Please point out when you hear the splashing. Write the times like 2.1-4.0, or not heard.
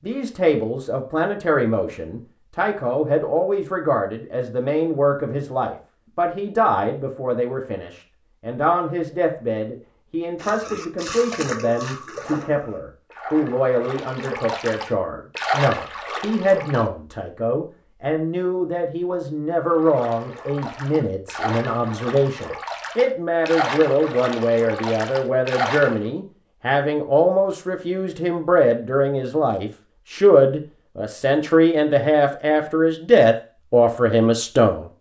10.4-16.9, 19.6-26.0.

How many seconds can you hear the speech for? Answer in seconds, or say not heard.
35 s.